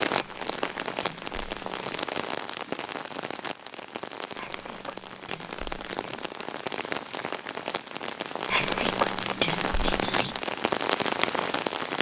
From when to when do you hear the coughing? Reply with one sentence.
You can't hear the coughing here.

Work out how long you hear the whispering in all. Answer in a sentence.
You can hear the whispering for 6 seconds altogether.